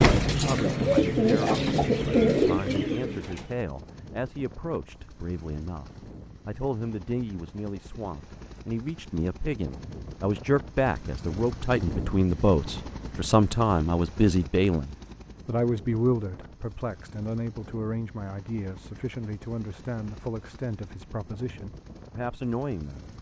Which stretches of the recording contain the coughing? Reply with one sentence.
You can't hear the coughing here.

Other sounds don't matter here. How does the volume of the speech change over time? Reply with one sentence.
The loudness of the speech goes up, then down.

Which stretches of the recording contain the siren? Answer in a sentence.
The siren can't be heard in this clip.